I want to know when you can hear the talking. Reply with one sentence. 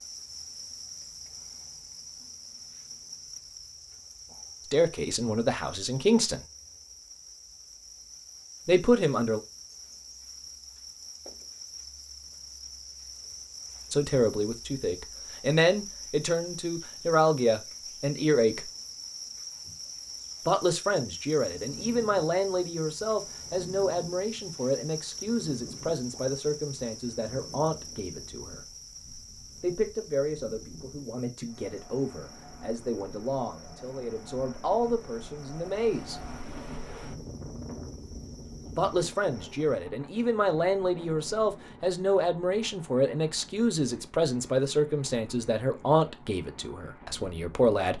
The talking can be heard from 4.7 to 6.4 s, from 8.7 to 9.4 s, from 13.9 to 18.7 s, from 20.4 to 28.6 s, from 29.6 to 36.2 s and from 38.8 to 47.9 s.